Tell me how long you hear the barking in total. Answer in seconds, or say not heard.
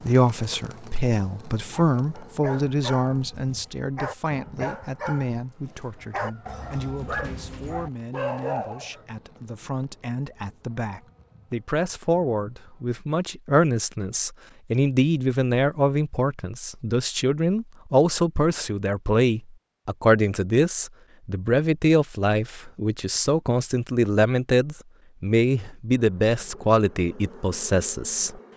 7 s.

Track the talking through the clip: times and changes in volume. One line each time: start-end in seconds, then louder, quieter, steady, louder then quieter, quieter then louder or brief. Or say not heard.
0.0-28.4 quieter then louder.